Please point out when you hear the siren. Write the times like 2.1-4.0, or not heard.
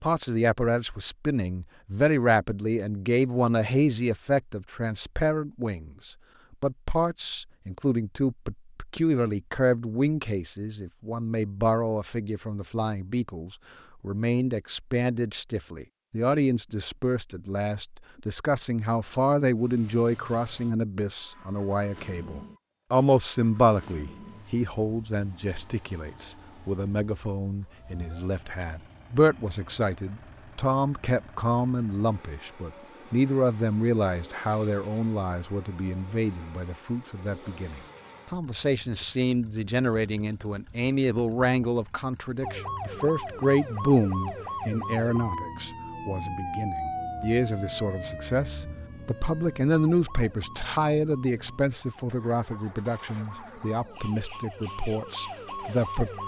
42.4-56.2.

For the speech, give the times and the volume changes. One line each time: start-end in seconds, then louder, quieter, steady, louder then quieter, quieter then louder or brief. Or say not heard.
0.0-56.1 steady.